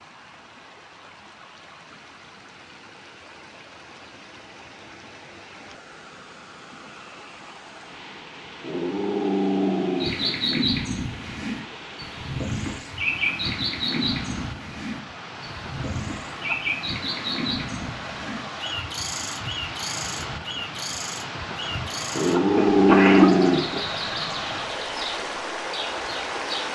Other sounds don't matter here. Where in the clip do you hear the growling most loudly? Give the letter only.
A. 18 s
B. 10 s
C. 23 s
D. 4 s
C.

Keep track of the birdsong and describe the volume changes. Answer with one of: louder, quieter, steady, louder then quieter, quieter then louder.
quieter.